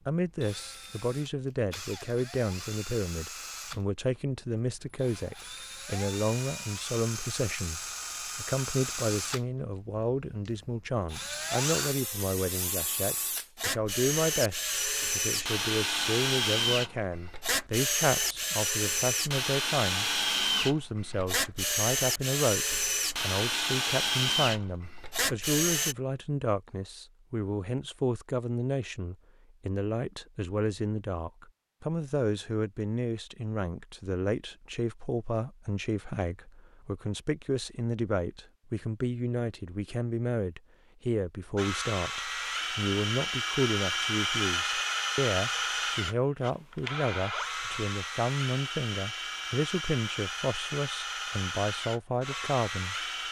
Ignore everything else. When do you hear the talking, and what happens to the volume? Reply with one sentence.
The talking can be heard from 0.1 to 53.2 s, at a steady volume.